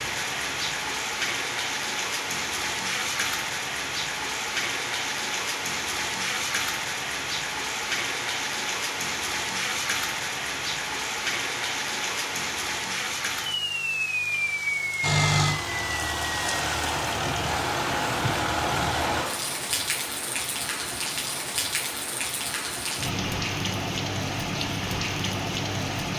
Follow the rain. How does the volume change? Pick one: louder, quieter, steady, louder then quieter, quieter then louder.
steady.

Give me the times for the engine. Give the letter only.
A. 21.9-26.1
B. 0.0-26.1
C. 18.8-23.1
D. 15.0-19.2
D.